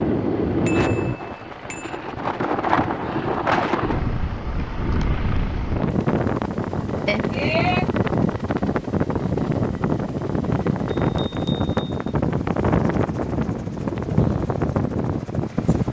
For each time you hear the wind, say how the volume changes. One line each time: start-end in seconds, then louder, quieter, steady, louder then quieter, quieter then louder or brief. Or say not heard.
0.0-15.8 steady.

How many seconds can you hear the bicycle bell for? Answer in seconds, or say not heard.
3 s.